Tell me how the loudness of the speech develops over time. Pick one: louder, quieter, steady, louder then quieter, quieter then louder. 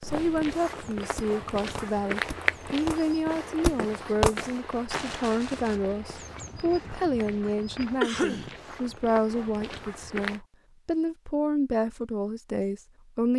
steady.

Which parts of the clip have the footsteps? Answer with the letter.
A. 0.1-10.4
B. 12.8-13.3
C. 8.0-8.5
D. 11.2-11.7
A.